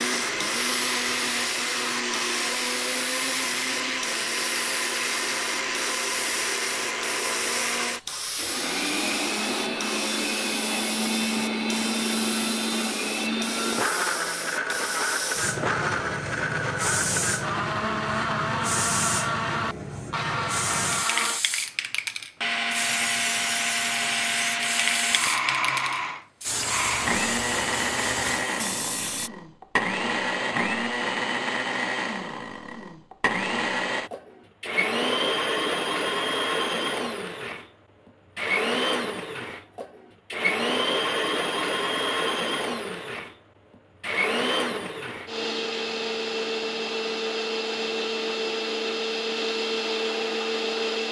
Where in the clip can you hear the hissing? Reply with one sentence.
You can hear the hissing from 0.0 to 29.3 s.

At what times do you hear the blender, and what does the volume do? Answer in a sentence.
The blender can be heard from 0.0 to 21.4 s, at a steady volume; and from 22.4 to 51.0 s, at a steady volume.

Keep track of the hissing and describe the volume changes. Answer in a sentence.
The loudness of the hissing stays about the same.